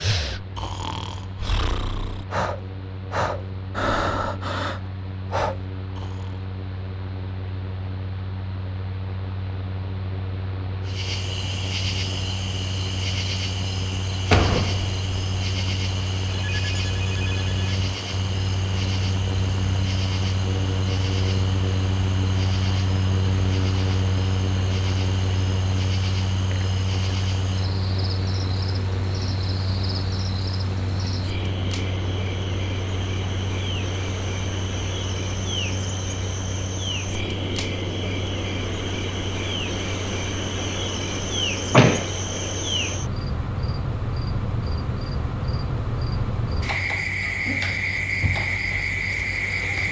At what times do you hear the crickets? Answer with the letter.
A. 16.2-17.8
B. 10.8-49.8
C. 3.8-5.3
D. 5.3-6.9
B.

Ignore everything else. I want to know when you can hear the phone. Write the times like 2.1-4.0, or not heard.
16.2-17.8.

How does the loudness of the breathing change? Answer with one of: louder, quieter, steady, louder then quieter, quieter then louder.
louder.